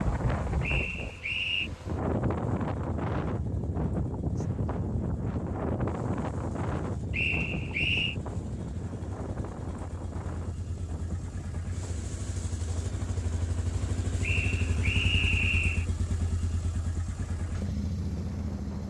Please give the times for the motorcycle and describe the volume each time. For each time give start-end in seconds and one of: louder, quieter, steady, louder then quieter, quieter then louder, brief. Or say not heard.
0.0-18.8 louder.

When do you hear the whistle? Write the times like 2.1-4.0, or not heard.
0.6-1.7, 7.1-8.2, 14.2-15.8.